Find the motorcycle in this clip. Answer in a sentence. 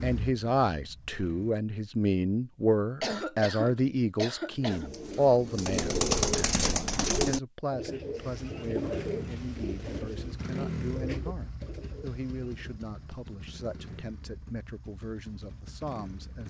The motorcycle can be heard from 0.0 to 1.6 s and from 8.8 to 16.4 s.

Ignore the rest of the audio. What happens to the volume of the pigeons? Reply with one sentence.
The volume of the pigeons goes down.